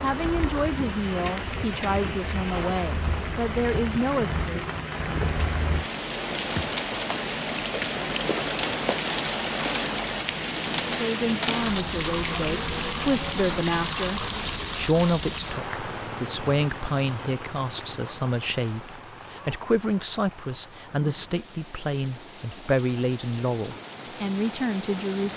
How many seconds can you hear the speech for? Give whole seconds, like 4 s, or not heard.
19 s.